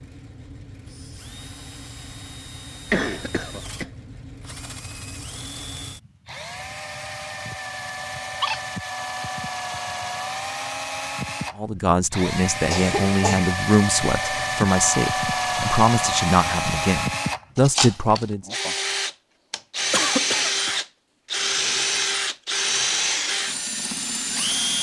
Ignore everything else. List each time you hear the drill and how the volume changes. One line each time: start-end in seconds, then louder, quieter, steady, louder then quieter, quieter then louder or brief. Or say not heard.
0.0-24.7 louder.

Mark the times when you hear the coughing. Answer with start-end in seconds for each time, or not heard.
2.9-3.9, 12.7-13.5, 19.9-20.9.